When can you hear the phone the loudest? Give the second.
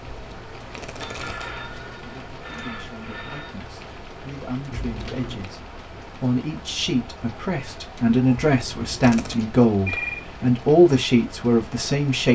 10 s.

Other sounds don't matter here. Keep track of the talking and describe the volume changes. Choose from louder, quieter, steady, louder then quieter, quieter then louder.
louder.